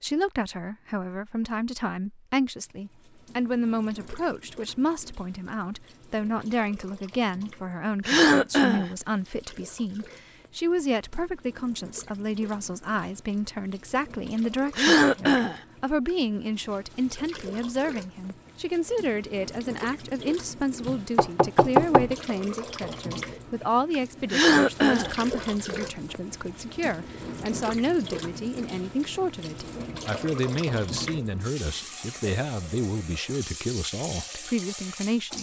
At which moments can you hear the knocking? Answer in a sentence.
You can hear the knocking from 20.8 to 22.1 s.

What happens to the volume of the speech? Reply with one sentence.
The volume of the speech stays about the same.